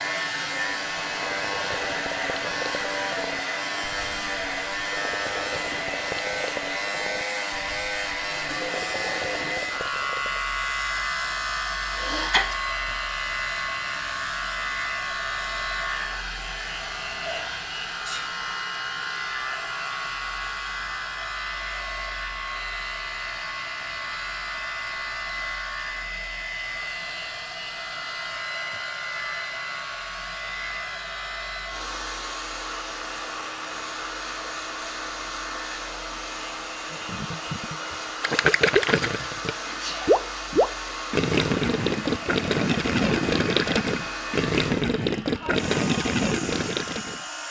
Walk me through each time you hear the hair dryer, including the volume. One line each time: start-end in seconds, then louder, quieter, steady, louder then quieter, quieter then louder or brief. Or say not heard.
0.0-47.4 steady.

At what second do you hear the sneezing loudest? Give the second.
12 s.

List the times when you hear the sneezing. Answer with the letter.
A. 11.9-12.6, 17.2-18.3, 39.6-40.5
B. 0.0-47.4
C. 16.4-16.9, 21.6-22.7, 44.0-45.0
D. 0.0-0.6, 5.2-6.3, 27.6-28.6
A.